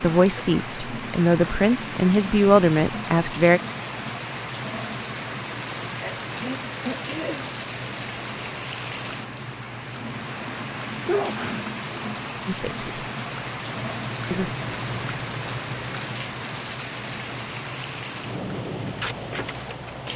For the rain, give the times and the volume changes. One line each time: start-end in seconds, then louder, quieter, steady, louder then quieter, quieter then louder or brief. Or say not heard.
0.0-20.1 steady.